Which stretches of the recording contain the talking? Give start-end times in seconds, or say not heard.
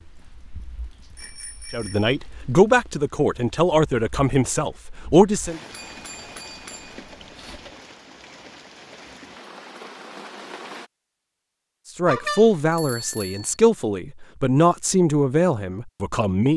1.7-5.6, 11.9-16.5.